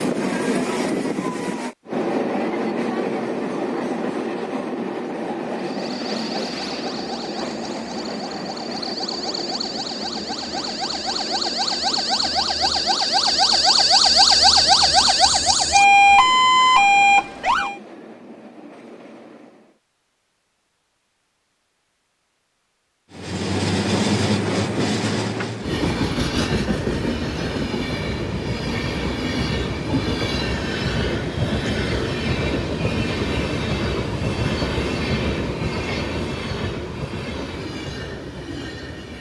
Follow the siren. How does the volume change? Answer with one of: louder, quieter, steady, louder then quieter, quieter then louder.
louder.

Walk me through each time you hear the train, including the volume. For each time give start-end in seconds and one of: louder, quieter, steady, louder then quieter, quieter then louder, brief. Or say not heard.
0.0-19.8 quieter
23.1-39.1 quieter.